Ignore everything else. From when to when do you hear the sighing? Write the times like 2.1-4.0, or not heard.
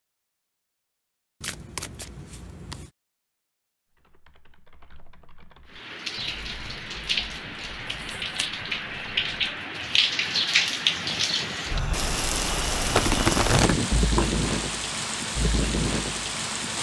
not heard.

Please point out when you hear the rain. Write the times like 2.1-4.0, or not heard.
5.7-16.7.